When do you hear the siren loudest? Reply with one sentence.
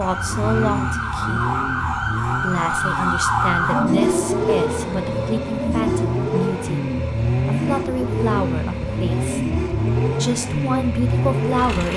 The volume of the siren peaks at 4 seconds.